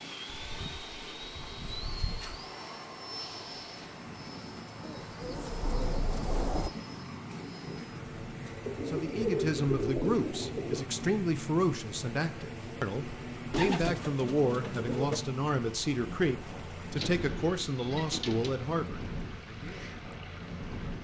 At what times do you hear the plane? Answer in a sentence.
You can hear the plane from 0.0 to 20.9 s.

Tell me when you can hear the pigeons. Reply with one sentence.
The pigeons can be heard from 0.4 to 2.4 s, from 4.8 to 6.7 s, from 8.7 to 10.8 s, from 13.5 to 15.2 s and from 16.9 to 18.6 s.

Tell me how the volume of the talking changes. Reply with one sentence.
The loudness of the talking stays about the same.